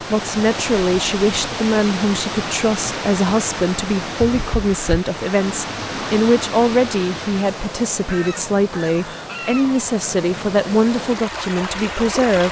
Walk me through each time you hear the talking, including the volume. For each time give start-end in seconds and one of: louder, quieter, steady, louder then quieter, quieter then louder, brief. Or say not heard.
0.0-12.4 steady.